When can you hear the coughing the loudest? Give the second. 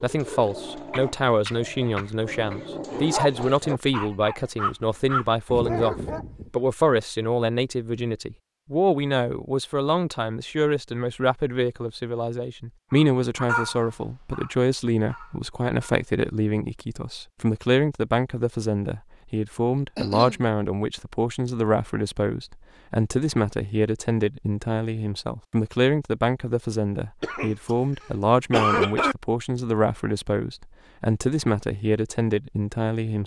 29 s.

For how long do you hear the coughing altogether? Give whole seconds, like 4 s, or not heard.
4 s.